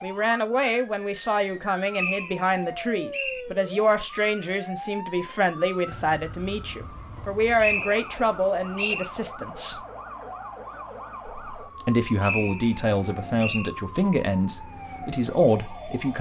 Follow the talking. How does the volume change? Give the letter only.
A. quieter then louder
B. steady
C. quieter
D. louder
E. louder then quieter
B.